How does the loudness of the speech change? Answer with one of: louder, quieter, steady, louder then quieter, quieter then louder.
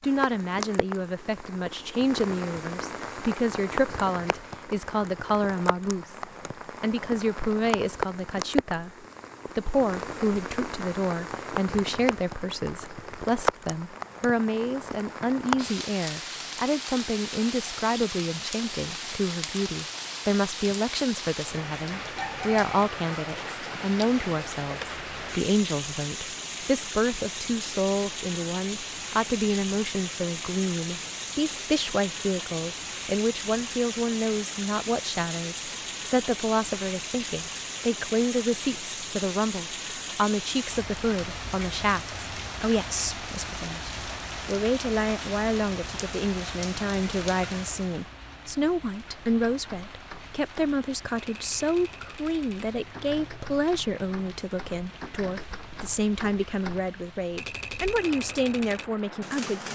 steady.